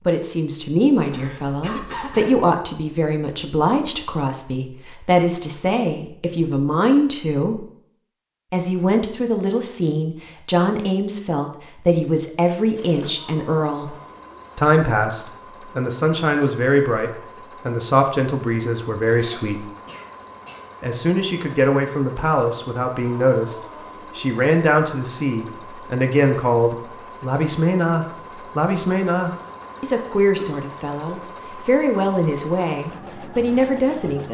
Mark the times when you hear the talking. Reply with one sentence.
You can hear the talking from 0.1 to 7.7 s, from 8.5 to 13.9 s, from 14.6 to 19.6 s and from 20.8 to 34.2 s.